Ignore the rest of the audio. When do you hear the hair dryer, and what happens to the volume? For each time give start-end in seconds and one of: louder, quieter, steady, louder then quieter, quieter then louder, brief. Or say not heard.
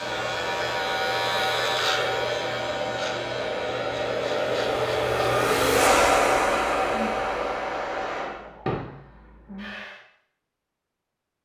0.0-10.0 louder then quieter.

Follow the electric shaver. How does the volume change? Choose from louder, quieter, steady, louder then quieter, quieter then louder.
quieter.